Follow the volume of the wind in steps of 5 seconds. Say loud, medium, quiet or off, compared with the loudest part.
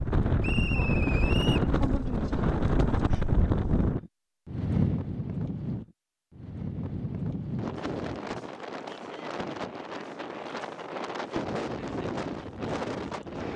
loud, medium, medium.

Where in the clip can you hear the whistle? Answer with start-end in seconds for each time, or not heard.
0.4-1.7.